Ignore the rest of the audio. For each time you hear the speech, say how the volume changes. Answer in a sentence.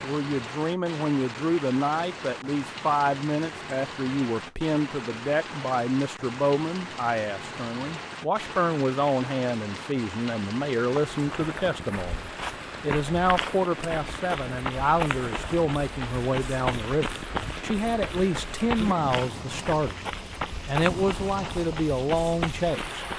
You can hear the speech from 0.0 to 23.1 s, at a steady volume.